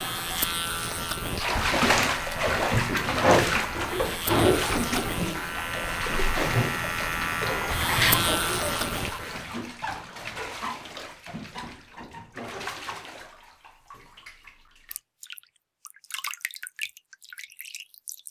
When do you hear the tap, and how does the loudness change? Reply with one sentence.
The tap can be heard from 0.0 to 18.2 s, getting quieter.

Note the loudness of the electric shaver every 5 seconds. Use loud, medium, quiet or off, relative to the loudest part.
loud, loud, off, off.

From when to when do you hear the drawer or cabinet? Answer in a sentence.
The drawer or cabinet can be heard from 7.8 to 8.4 s.